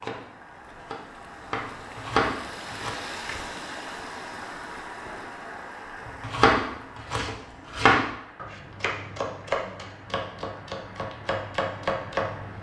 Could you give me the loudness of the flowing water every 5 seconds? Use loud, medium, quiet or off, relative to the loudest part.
loud, medium, medium.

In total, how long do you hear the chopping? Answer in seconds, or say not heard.
9 s.